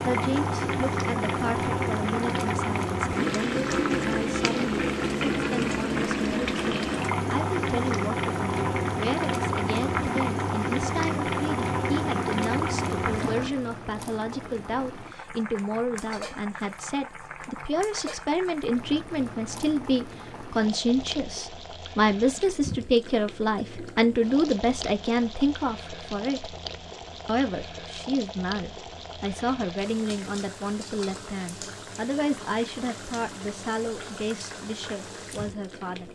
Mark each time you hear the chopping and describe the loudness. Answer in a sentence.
The chopping can't be heard in this clip.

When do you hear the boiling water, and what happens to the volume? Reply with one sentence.
The boiling water can be heard from 0.0 to 36.0 s, getting quieter.